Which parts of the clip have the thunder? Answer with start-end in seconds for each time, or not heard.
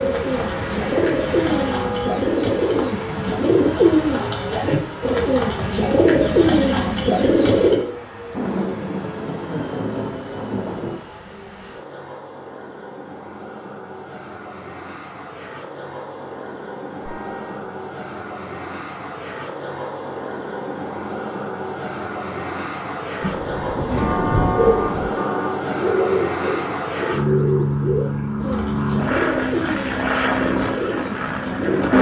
8.3-11.0, 23.2-25.1.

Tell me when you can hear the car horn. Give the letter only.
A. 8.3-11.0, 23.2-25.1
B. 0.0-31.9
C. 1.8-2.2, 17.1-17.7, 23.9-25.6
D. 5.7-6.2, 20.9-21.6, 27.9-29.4
C.